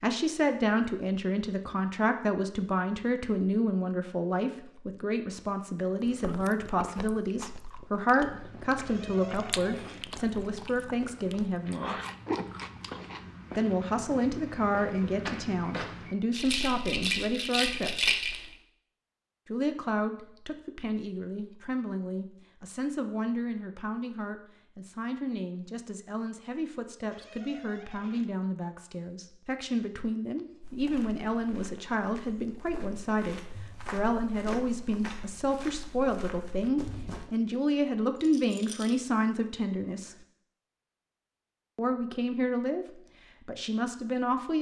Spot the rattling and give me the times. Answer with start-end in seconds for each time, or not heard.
16.3-18.4, 38.1-39.0.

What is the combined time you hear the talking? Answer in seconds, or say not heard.
40 s.